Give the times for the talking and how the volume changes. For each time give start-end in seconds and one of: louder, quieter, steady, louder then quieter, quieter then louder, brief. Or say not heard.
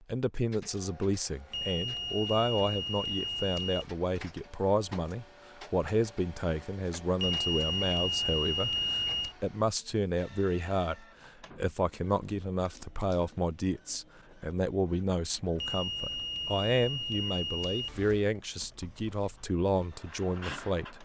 0.1-20.9 steady.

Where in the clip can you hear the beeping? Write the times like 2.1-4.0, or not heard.
1.5-4.0, 7.2-9.3, 15.6-18.2.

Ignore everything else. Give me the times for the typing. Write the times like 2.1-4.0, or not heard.
not heard.